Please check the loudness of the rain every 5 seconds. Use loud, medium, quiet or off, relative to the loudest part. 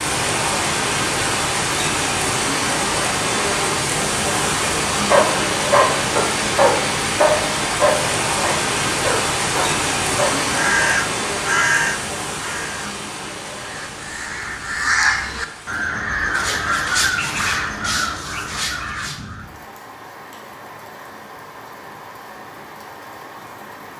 loud, loud, medium, quiet, quiet.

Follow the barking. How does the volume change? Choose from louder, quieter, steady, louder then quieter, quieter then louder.
quieter.